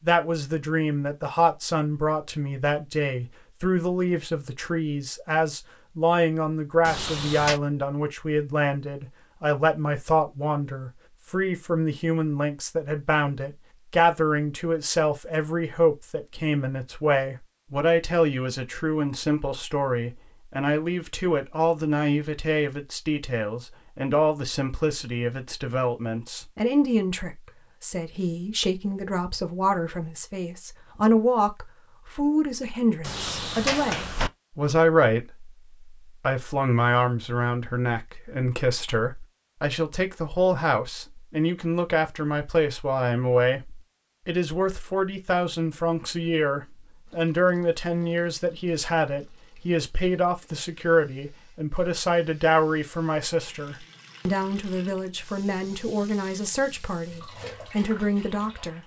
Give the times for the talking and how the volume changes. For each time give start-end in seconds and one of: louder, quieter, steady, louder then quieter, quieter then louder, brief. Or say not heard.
0.0-58.8 steady.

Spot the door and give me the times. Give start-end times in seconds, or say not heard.
6.8-7.6, 33.0-34.3.